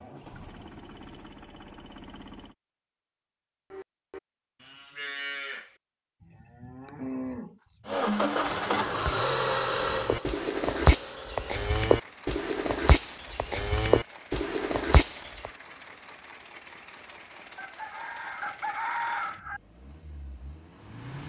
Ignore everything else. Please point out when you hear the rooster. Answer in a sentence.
The rooster can be heard from 17.6 to 19.6 s.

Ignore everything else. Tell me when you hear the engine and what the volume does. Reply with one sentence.
The engine can be heard briefly from 0.0 to 2.5 s; and from 7.8 to 21.2 s, getting quieter.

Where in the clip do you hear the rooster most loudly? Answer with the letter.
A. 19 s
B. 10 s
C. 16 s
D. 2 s
A.